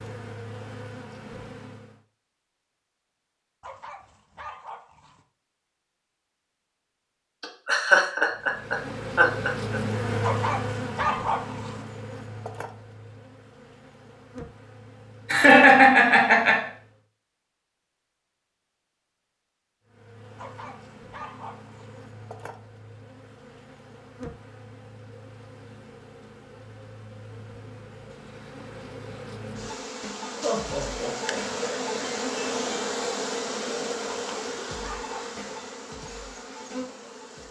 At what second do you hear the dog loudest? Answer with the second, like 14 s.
11 s.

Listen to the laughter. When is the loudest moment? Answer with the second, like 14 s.
16 s.